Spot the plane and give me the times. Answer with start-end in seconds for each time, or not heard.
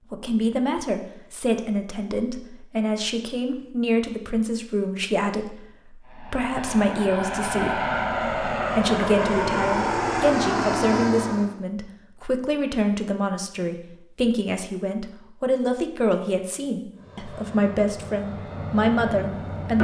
6.0-11.5, 16.9-19.8.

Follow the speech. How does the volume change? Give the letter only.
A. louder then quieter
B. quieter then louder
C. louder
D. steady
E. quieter
D.